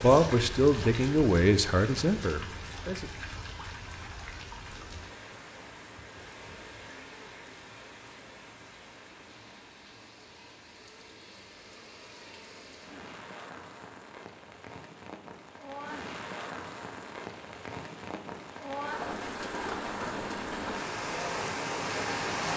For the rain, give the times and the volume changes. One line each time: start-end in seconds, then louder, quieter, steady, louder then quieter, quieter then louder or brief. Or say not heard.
0.0-22.5 quieter then louder.